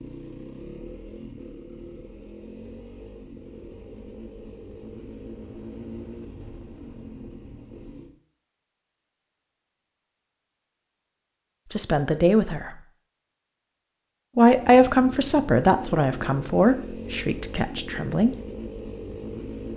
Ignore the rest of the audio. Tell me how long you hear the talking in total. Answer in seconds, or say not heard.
5 s.